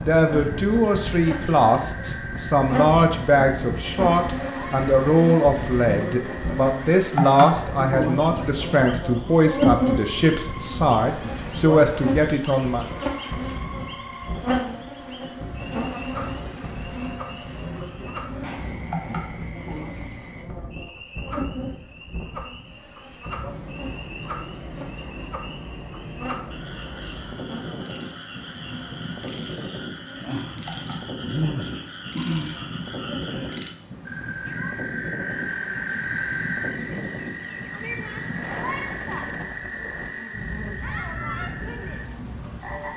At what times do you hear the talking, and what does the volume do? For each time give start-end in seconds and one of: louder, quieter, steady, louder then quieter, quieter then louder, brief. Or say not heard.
0.0-12.8 steady.